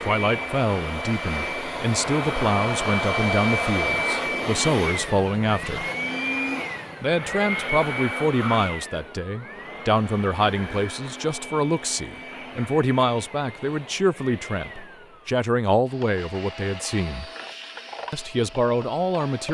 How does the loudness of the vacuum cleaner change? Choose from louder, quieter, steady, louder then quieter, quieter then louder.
quieter.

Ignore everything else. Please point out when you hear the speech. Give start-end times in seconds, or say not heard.
0.0-5.8, 7.0-17.3, 18.1-19.4.